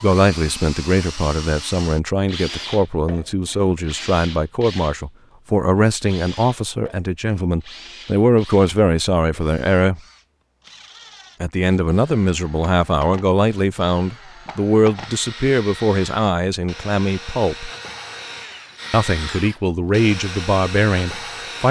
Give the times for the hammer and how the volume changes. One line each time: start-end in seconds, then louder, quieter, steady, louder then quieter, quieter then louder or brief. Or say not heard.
not heard.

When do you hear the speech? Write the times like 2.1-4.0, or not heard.
0.0-10.0, 11.4-17.7, 18.9-21.6.